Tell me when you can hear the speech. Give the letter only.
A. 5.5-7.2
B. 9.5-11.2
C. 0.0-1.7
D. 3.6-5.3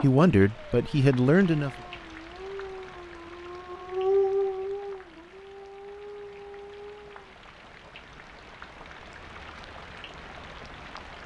C.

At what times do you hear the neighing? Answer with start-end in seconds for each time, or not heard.
not heard.